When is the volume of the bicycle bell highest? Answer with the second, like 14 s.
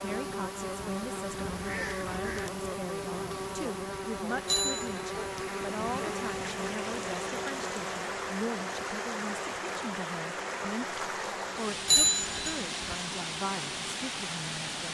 12 s.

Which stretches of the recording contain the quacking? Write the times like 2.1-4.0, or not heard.
1.4-2.5.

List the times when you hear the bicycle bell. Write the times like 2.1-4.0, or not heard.
4.5-4.9, 11.8-12.9.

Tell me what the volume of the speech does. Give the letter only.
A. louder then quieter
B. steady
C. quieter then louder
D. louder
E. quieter
B.